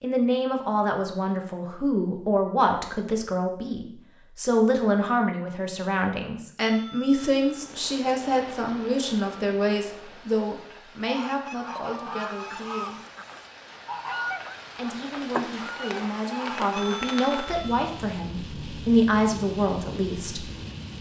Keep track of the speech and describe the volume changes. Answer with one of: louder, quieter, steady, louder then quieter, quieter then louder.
quieter then louder.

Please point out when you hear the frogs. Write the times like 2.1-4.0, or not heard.
not heard.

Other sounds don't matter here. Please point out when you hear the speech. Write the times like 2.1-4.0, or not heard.
0.0-13.0, 14.8-20.5.